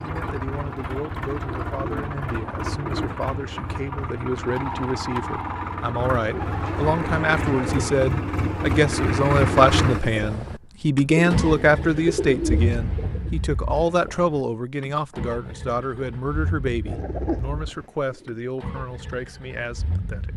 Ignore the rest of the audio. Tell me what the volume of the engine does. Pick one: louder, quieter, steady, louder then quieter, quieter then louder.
louder then quieter.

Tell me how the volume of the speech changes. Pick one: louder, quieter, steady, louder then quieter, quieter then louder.
louder then quieter.